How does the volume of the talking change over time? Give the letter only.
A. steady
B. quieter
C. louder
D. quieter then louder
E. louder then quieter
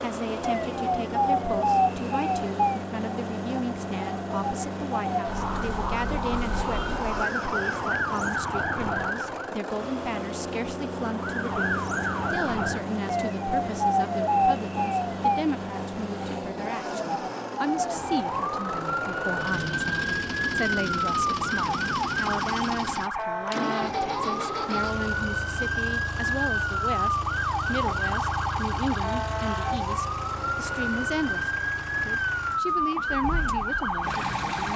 A.